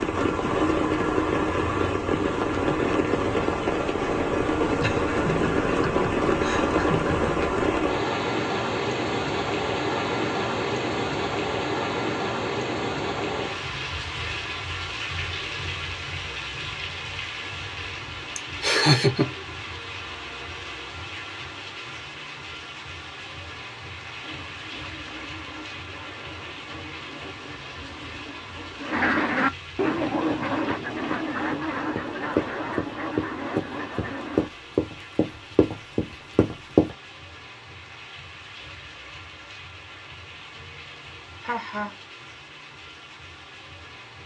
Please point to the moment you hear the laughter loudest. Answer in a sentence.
The loudest moment of the laughter is at 19 seconds.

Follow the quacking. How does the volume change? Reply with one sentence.
The loudness of the quacking goes up, then down.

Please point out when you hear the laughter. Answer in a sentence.
The laughter can be heard from 4.8 to 7.5 s, from 18.4 to 19.3 s and from 41.4 to 41.9 s.